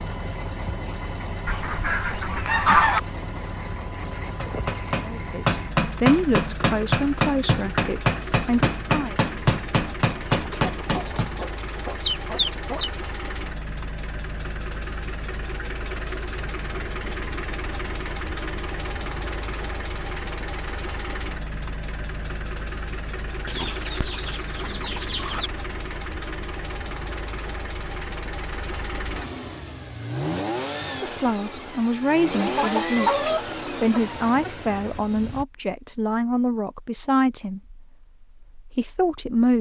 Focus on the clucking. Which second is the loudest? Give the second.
3 s.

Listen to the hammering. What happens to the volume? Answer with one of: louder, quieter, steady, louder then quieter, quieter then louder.
steady.